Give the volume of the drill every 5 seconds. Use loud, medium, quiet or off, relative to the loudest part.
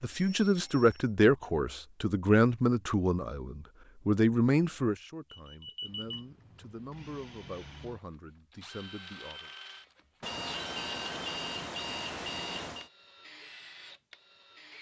off, loud, loud.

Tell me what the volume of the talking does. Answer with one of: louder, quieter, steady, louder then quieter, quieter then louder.
quieter.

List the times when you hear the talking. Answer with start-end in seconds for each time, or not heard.
0.0-9.5.